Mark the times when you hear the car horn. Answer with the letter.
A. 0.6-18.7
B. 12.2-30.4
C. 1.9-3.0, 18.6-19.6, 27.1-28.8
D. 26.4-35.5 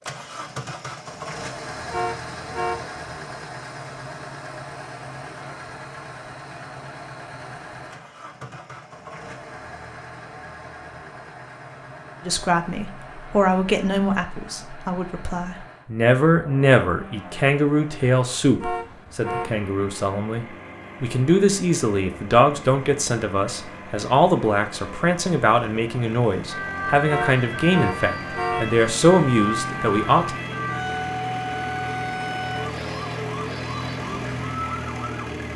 C.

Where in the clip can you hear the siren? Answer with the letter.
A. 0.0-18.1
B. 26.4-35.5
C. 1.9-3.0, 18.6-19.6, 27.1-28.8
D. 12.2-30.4
B.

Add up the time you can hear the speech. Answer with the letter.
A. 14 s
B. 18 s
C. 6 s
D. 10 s
B.